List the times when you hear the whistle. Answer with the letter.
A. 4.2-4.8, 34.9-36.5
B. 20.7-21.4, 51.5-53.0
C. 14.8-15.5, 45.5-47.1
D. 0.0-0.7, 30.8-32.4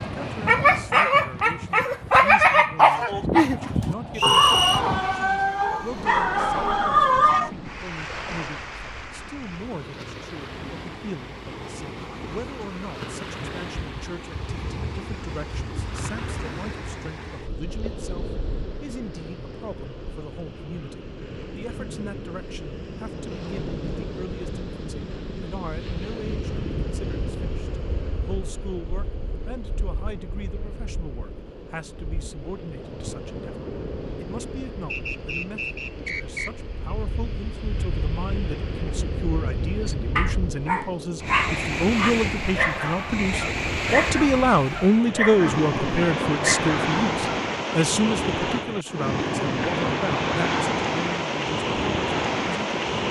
A.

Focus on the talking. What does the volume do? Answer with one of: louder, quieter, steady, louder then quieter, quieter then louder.
louder.